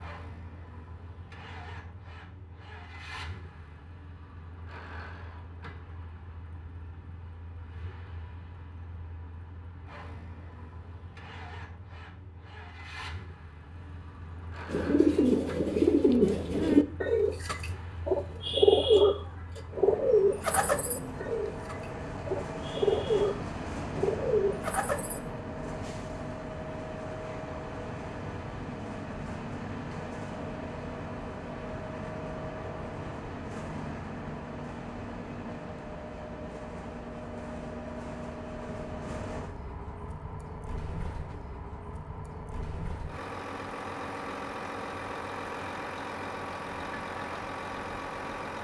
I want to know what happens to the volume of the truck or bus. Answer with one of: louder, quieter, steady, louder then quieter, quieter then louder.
louder.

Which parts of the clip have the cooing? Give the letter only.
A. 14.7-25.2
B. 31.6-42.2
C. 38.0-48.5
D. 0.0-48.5
A.